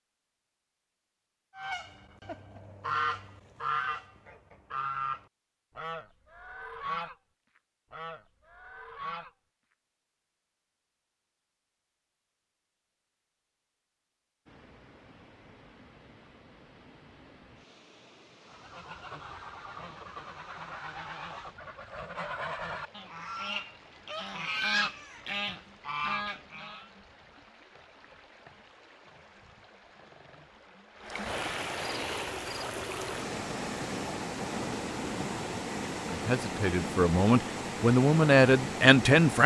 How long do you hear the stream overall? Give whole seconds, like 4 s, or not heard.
25 s.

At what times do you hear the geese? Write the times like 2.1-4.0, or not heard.
1.6-7.2, 7.9-9.3, 18.4-26.9.